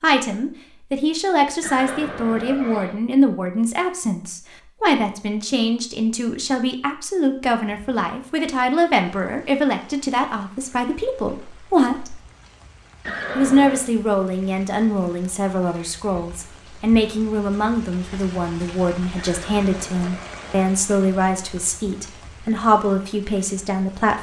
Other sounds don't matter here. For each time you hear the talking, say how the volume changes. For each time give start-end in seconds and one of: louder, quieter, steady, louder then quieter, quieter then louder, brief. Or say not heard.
0.0-12.2 steady
13.3-24.1 steady.